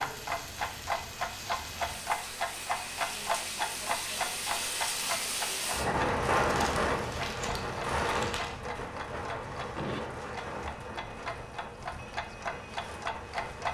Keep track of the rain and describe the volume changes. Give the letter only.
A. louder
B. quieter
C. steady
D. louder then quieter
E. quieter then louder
D.